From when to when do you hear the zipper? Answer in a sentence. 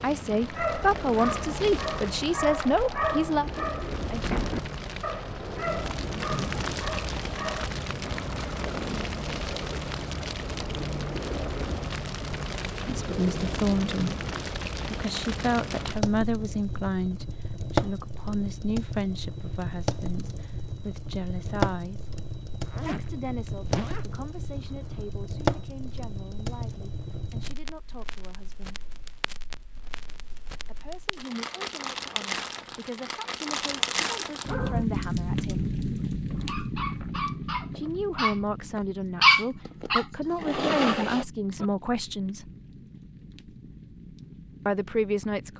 The zipper can be heard from 22.6 to 25.0 s.